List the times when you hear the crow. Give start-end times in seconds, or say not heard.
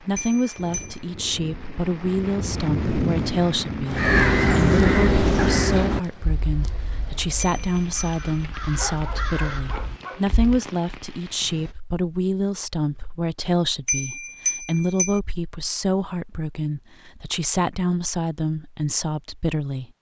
3.9-10.6.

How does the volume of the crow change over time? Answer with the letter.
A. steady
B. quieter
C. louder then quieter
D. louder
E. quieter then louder
E.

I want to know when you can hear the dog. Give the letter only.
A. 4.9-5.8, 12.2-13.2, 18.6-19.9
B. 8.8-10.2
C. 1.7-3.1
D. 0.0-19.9
B.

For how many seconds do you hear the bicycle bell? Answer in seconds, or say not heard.
3 s.